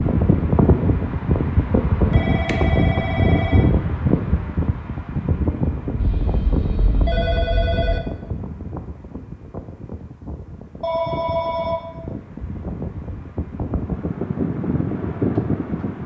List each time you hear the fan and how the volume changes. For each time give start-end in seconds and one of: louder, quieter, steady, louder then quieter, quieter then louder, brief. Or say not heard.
0.0-16.0 quieter then louder.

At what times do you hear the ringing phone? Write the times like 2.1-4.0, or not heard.
2.1-3.6, 6.0-8.0, 10.8-11.9.